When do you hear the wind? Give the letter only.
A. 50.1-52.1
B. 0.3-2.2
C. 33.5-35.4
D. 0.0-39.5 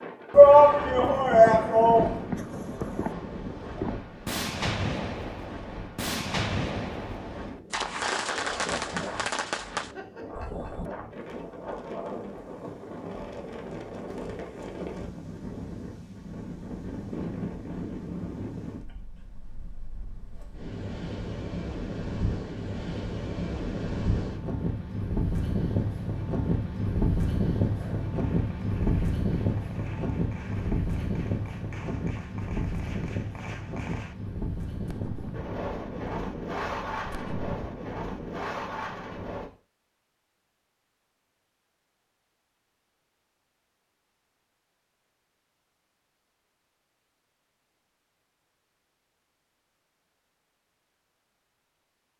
D.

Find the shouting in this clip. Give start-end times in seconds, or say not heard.
0.3-2.2.